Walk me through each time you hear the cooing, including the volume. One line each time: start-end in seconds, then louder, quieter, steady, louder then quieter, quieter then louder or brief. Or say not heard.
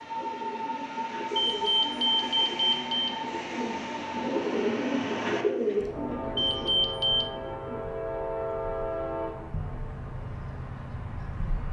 0.1-7.8 louder then quieter.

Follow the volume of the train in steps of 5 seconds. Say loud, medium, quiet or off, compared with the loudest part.
loud, loud, medium.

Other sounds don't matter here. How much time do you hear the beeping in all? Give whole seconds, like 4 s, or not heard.
3 s.